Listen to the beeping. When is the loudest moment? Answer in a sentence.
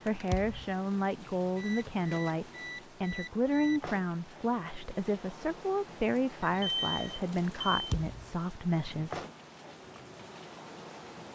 The loudest moment of the beeping is at 7 seconds.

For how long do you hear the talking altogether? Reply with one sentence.
The talking can be heard for 9 seconds in total.